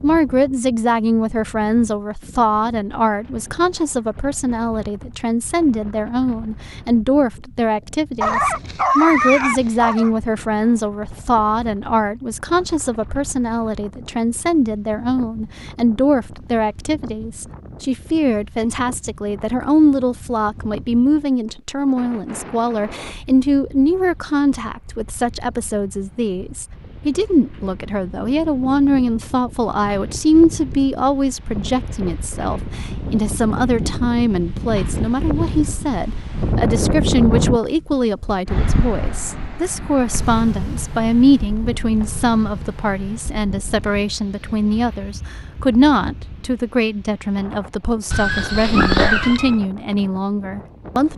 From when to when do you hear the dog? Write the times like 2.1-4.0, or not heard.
8.2-10.1, 48.1-49.6.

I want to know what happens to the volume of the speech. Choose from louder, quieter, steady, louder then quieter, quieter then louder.
steady.